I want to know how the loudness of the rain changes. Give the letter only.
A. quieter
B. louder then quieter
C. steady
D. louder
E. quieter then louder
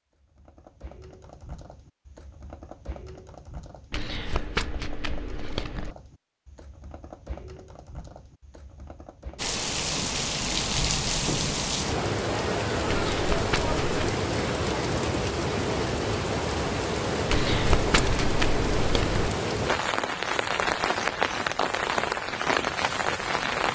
C.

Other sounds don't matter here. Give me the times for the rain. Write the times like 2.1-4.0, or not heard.
9.3-23.7.